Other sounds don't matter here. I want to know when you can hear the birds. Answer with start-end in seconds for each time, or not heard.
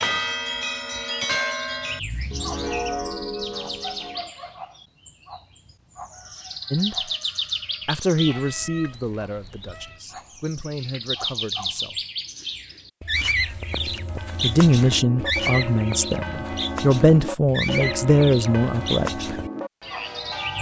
0.2-20.5.